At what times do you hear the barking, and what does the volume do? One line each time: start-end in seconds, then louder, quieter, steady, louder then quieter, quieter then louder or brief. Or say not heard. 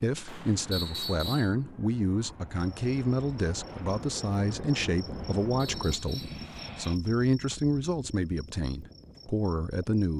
not heard.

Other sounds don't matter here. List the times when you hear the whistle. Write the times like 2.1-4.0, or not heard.
0.7-1.6, 5.6-6.4.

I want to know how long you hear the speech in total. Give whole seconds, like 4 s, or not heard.
10 s.